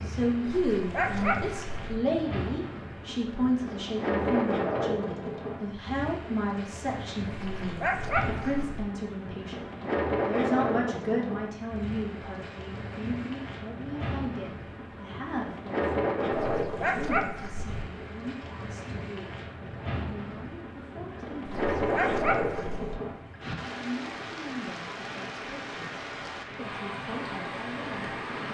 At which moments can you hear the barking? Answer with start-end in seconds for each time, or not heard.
0.6-1.9, 7.3-8.8, 16.3-17.9, 21.4-23.0.